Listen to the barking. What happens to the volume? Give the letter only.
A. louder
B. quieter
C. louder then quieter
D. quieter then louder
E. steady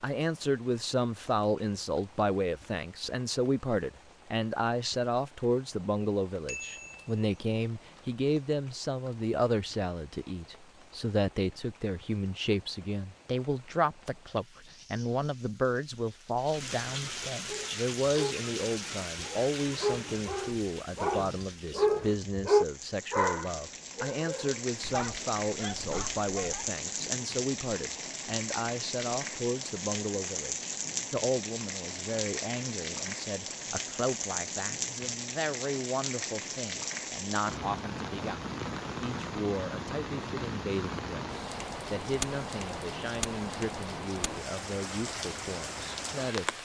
C.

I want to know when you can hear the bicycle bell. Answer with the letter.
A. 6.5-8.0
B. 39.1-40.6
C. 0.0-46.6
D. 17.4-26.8
A.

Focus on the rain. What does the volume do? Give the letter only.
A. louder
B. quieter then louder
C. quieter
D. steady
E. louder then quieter
A.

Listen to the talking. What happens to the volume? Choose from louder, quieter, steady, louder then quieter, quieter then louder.
quieter.